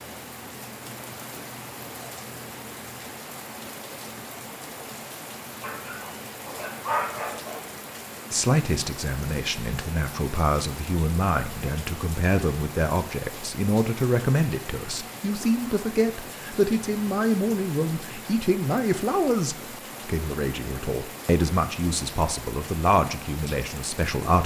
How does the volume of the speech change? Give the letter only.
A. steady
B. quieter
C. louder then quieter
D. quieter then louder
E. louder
A.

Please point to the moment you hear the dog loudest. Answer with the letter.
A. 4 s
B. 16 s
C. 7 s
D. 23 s
C.